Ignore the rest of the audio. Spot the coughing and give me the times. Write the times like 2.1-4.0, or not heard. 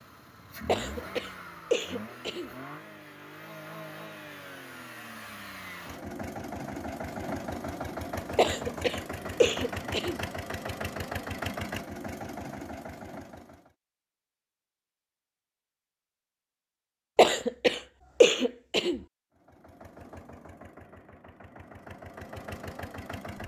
0.7-2.5, 8.3-10.2, 17.1-19.0.